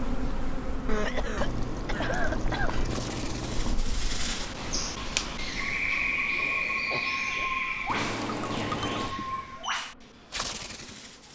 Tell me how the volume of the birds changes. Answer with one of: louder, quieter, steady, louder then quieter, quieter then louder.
louder then quieter.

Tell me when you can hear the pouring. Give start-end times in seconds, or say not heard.
1.4-3.8, 7.8-9.2.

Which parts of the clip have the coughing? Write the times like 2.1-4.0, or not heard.
0.8-2.8, 6.9-7.5.